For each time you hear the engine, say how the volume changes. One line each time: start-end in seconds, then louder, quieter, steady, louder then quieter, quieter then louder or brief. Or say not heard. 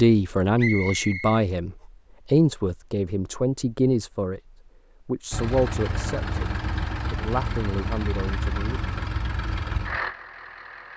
5.3-10.9 steady.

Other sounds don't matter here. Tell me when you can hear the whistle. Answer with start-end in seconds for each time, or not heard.
0.6-1.4.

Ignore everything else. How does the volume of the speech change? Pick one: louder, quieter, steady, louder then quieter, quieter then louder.
quieter.